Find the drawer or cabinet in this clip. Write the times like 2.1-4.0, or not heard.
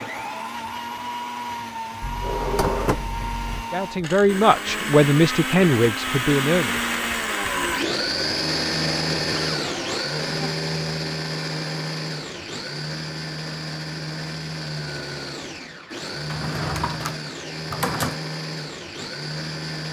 2.0-3.6, 9.3-10.6, 16.2-18.2.